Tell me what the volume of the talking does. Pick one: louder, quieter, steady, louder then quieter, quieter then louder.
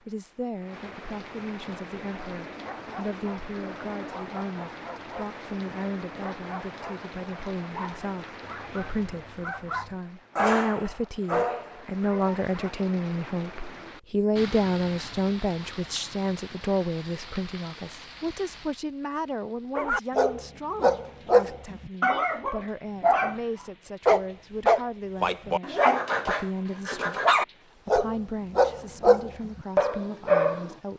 louder then quieter.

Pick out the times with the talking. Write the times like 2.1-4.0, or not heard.
0.1-30.9.